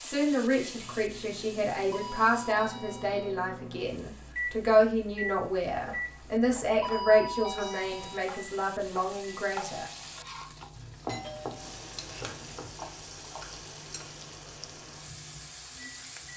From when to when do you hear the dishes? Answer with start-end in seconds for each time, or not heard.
not heard.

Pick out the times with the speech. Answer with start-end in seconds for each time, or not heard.
0.0-9.9.